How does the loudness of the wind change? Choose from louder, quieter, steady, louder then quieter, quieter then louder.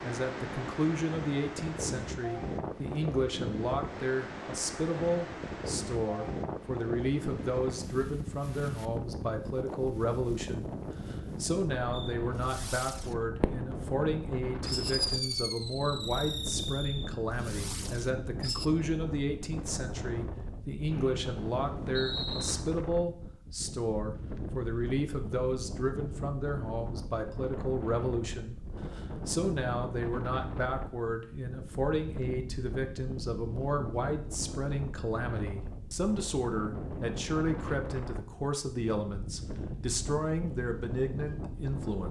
steady.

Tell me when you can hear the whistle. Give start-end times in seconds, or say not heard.
20.9-22.5.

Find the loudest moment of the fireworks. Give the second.
15 s.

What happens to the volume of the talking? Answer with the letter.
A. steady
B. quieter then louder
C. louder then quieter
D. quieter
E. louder
A.